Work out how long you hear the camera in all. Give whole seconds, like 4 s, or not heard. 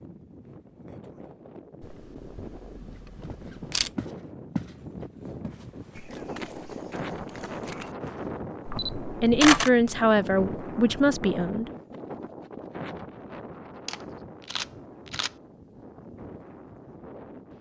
5 s.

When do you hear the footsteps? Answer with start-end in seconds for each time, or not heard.
3.2-4.8, 5.4-8.8.